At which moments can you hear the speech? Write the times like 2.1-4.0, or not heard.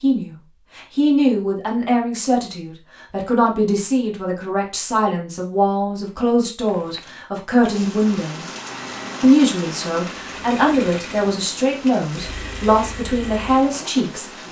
0.0-8.4, 9.2-14.2.